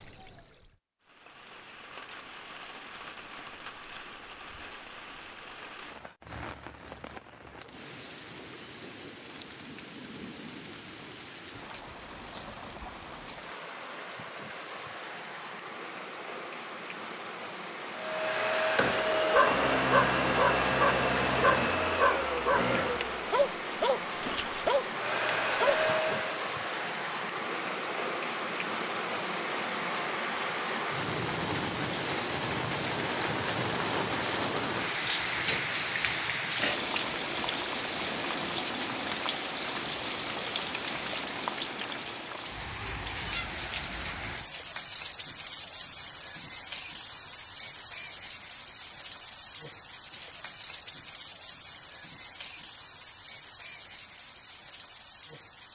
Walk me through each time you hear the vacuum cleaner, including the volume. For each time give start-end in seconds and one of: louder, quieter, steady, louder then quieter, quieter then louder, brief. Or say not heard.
17.9-26.4 quieter then louder.